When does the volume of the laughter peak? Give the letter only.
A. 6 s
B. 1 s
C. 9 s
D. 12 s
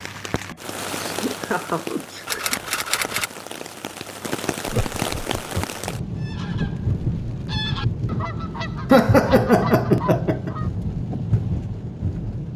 C.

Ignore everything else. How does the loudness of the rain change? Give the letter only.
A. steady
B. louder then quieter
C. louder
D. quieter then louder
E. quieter
A.